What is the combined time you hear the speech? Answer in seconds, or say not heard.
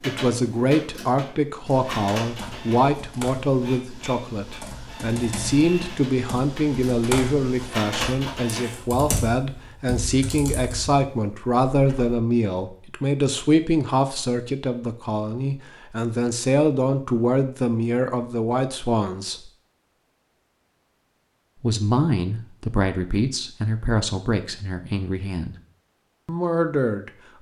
24 s.